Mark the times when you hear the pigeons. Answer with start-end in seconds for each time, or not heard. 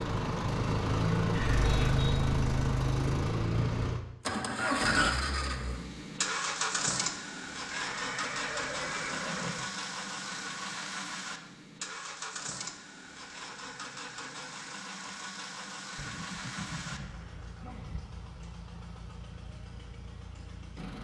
not heard.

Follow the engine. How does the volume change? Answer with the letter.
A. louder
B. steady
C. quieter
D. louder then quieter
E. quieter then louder
C.